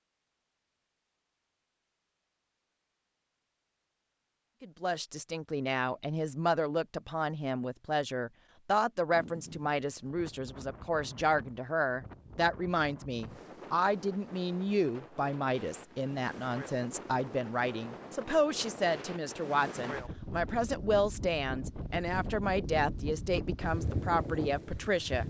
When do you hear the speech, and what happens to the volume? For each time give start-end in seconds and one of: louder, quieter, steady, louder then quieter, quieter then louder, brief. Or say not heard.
4.6-25.2 steady.